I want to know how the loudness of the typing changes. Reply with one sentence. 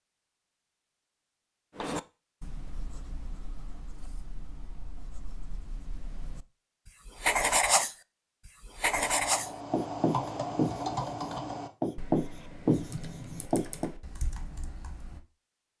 The loudness of the typing goes down.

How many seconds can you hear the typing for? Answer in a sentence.
You can hear the typing for 6 seconds altogether.